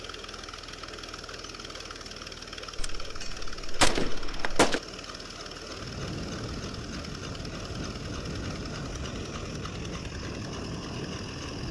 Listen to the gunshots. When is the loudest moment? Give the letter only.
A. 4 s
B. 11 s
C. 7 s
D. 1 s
A.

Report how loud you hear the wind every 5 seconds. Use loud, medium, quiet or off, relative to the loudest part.
off, loud, loud.